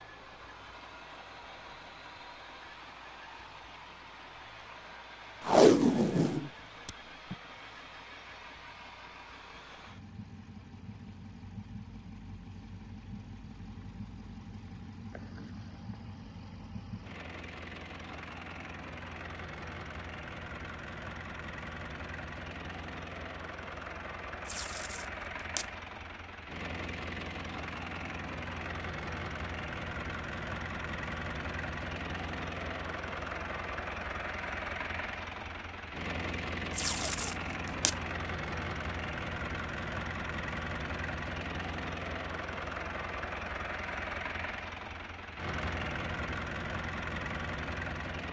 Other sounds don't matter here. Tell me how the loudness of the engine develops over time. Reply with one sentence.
The volume of the engine goes up.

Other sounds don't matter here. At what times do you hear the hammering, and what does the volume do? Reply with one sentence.
You can't hear the hammering here.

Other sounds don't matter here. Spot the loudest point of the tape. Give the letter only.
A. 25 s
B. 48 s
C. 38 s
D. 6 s
D.